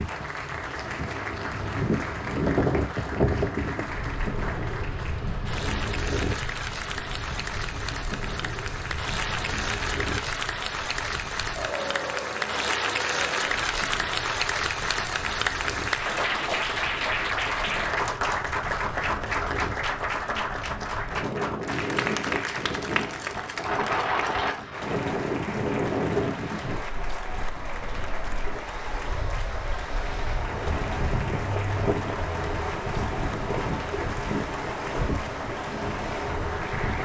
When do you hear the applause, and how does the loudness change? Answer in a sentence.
You can hear the applause from 0.0 to 37.0 s, getting louder then quieter.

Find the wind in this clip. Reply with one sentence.
The wind can be heard from 0.0 to 37.0 s.